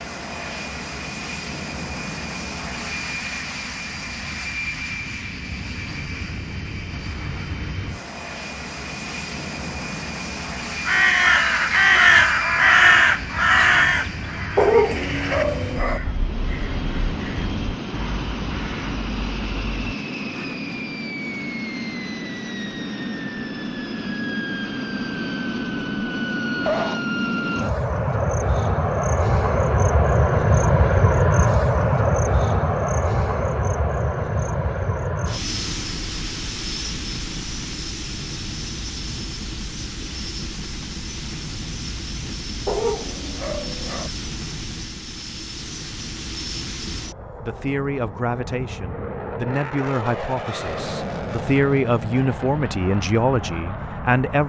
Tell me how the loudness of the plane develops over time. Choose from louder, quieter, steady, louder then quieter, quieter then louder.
louder then quieter.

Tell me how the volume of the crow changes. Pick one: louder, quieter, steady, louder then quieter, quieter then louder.
quieter.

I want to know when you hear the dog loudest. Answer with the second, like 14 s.
15 s.